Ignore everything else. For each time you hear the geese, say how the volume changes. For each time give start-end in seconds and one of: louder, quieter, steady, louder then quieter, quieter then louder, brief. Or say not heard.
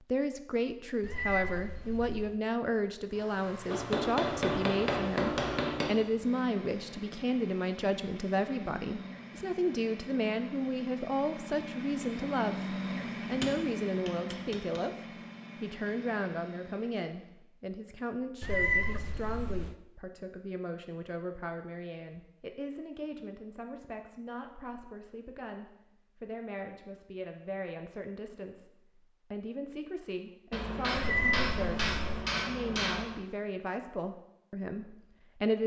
not heard.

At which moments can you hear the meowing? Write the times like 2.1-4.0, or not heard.
1.0-2.4, 18.4-19.8, 30.9-32.2.